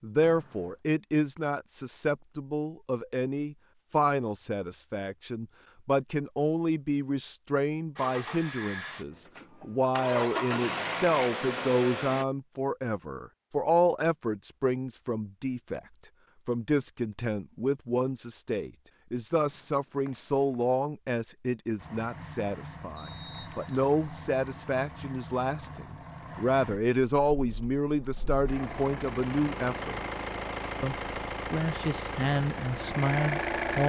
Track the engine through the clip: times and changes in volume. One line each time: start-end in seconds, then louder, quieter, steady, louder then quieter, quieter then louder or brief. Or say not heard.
8.0-12.2 quieter then louder
21.8-33.8 louder.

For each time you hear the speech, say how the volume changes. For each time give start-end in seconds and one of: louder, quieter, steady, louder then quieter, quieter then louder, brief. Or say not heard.
0.0-15.8 steady
16.4-30.0 steady
30.8-33.8 brief.